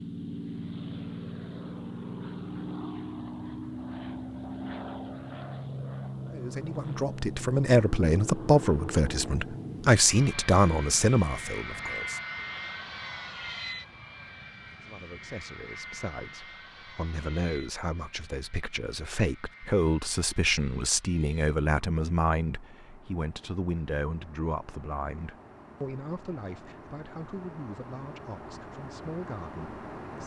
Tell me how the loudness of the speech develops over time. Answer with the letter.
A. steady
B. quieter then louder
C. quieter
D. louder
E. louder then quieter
C.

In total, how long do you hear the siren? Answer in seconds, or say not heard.
not heard.